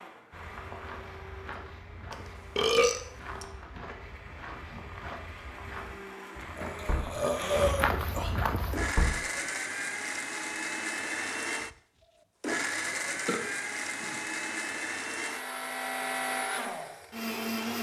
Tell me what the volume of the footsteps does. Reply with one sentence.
The volume of the footsteps goes up.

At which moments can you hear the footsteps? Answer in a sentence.
The footsteps can be heard from 0.3 to 8.9 s.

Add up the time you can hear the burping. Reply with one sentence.
You can hear the burping for 4 seconds altogether.